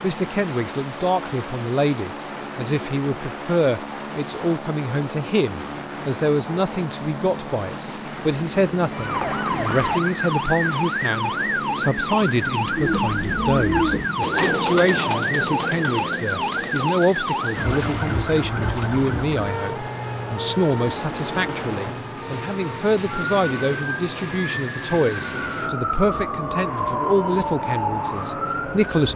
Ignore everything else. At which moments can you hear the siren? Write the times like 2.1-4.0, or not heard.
8.9-29.1.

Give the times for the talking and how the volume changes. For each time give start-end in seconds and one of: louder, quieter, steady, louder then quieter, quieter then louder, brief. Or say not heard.
0.0-29.1 steady.